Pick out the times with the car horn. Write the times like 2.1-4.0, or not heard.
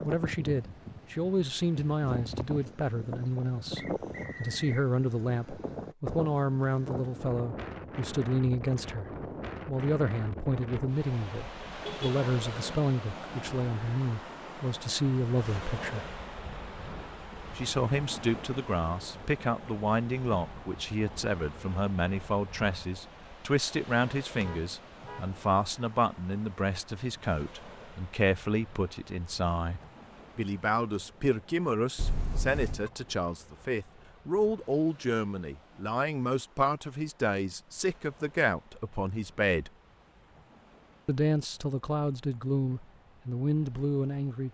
11.7-12.1, 24.4-25.3, 31.9-32.9.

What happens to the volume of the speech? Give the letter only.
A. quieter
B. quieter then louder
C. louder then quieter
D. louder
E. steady
E.